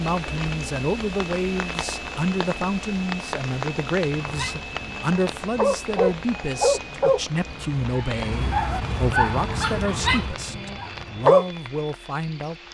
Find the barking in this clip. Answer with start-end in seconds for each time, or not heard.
4.1-11.4.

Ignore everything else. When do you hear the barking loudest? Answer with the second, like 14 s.
11 s.